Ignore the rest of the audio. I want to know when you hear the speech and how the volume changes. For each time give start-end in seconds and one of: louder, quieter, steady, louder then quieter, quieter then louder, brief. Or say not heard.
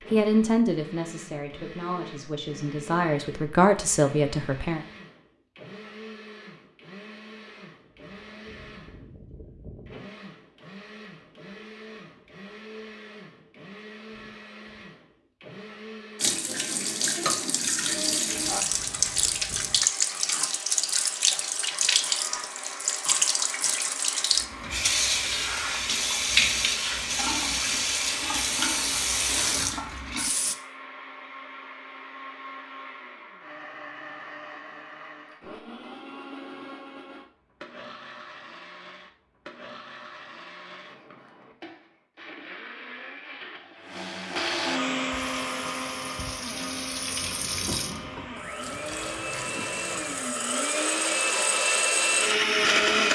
0.1-4.8 quieter then louder.